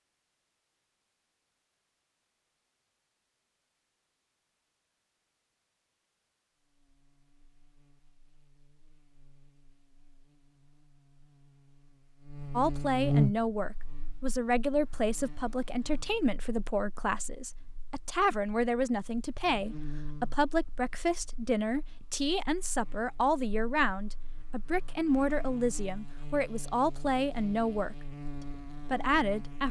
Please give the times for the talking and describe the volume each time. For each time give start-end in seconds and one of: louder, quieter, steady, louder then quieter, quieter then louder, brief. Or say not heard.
12.6-27.9 steady
28.9-29.6 brief.